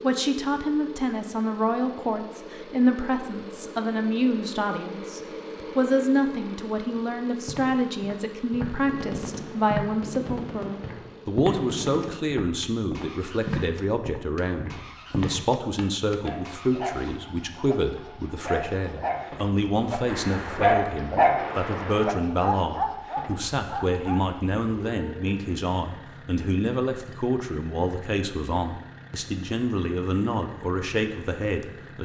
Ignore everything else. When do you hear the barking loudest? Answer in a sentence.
The loudest moment of the barking is at 21 seconds.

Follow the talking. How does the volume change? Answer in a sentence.
The volume of the talking stays about the same.